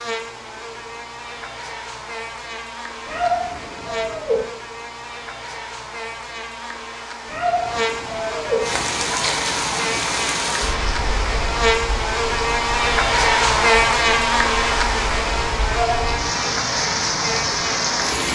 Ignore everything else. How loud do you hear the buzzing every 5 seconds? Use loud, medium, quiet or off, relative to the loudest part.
quiet, medium, loud, medium.